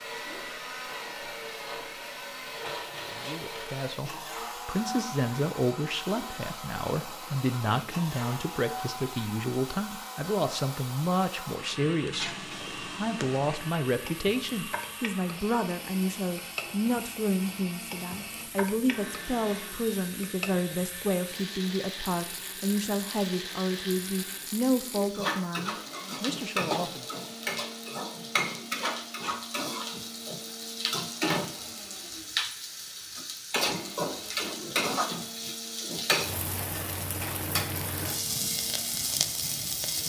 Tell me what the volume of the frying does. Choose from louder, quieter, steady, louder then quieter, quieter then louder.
louder.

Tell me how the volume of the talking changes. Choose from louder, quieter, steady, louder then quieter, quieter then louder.
steady.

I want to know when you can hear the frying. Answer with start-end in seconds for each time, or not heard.
0.0-40.0.